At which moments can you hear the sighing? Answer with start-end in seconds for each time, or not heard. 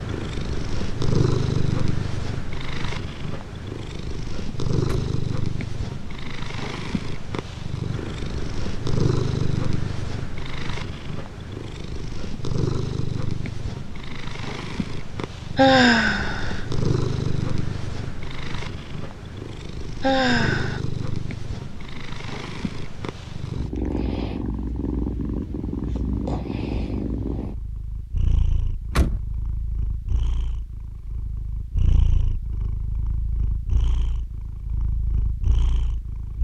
15.6-16.6, 20.0-20.8.